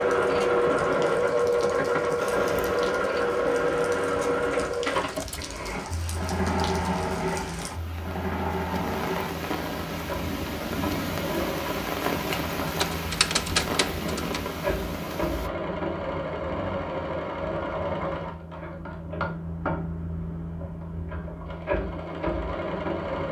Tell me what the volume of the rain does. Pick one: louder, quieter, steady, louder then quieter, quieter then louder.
louder.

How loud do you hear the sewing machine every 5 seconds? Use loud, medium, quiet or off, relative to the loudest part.
loud, medium, medium, medium, medium.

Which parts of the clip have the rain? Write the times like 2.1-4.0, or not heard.
0.0-15.5.